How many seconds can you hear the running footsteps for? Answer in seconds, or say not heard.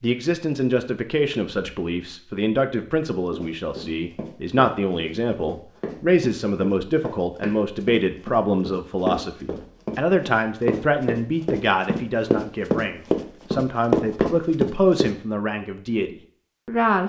12 s.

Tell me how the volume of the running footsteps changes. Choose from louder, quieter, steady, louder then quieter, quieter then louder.
louder.